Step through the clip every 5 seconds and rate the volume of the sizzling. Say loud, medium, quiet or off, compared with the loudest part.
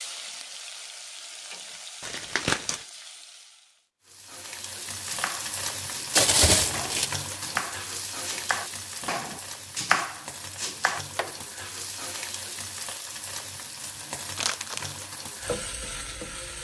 medium, loud, loud, loud.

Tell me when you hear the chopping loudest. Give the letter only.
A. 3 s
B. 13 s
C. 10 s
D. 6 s
C.